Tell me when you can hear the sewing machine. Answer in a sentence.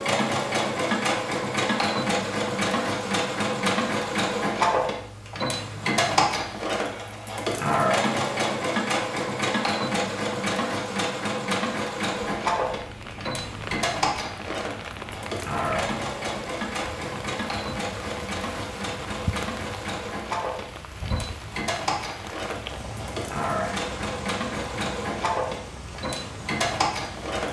You can hear the sewing machine from 0.0 to 27.4 s.